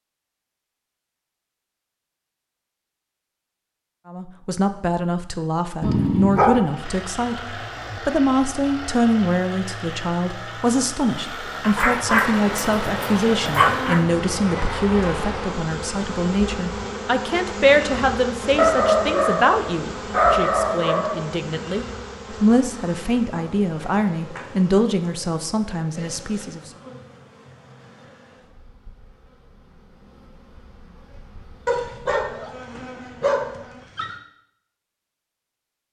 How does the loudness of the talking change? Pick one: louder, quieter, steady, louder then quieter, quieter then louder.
steady.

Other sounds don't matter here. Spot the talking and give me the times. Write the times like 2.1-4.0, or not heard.
4.0-26.7.